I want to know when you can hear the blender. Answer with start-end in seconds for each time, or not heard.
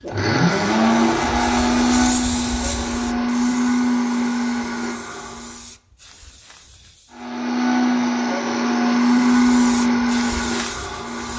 0.0-5.6, 7.1-11.3.